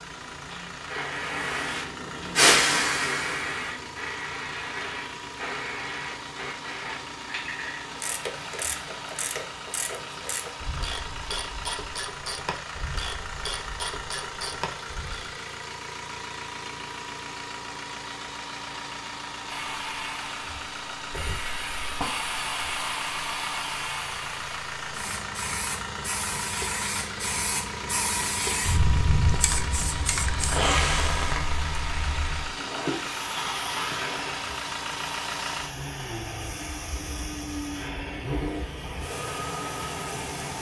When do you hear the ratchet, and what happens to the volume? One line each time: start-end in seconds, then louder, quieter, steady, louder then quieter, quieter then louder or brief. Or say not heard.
7.8-15.3 steady.